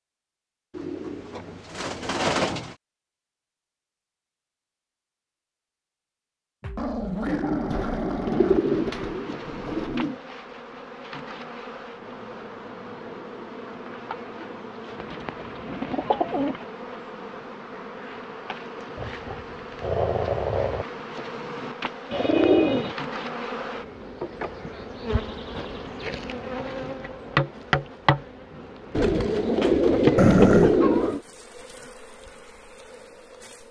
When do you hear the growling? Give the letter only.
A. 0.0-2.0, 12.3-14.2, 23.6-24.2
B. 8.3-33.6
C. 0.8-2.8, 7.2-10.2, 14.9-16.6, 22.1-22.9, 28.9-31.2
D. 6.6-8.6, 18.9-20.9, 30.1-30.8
D.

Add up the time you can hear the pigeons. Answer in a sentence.
The pigeons can be heard for 10 seconds in total.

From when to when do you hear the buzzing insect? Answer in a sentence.
The buzzing insect can be heard from 8.3 to 33.6 s.